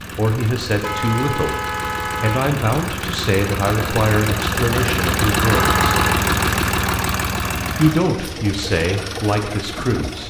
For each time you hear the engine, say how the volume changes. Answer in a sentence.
The engine can be heard from 0.0 to 10.2 s, getting louder then quieter.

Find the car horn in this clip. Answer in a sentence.
The car horn can be heard from 0.8 to 2.5 s and from 5.5 to 6.2 s.